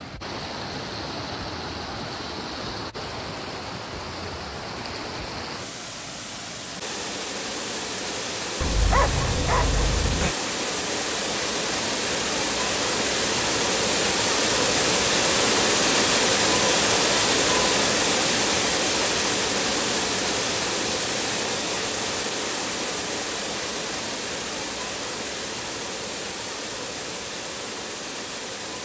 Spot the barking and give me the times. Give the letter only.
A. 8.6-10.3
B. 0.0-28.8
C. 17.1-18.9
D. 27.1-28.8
A.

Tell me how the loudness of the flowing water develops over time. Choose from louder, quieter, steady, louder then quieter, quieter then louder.
louder then quieter.